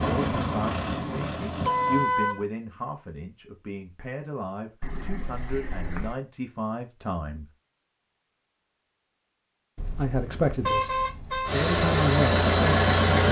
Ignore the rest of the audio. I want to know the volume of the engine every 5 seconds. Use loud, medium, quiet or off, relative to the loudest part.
medium, off, loud.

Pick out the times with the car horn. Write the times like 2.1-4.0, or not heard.
1.6-2.5, 4.8-6.2, 9.8-11.6.